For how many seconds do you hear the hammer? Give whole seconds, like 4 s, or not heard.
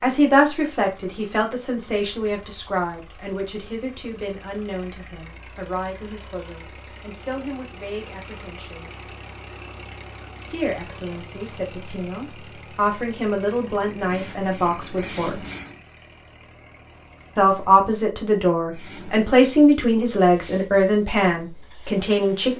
not heard.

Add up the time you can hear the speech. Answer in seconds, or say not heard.
19 s.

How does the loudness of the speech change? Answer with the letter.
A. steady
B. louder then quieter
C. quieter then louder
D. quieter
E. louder
C.